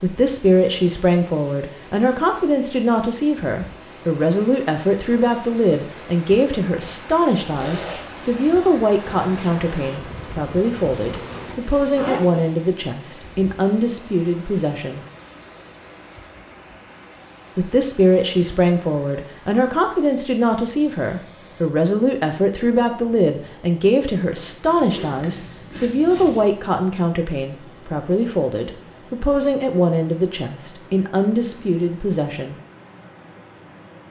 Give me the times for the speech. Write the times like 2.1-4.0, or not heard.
0.0-15.1, 17.6-32.5.